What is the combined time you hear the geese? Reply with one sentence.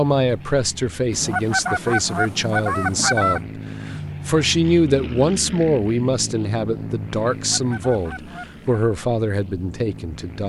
The geese can be heard for 4 seconds in total.